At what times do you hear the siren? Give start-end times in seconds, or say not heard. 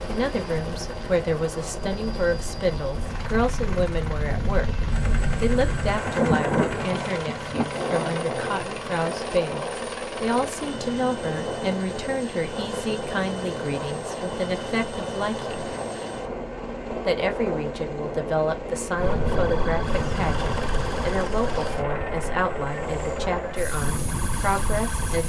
18.9-25.2.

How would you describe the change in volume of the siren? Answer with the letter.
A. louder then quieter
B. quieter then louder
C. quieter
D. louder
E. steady
B.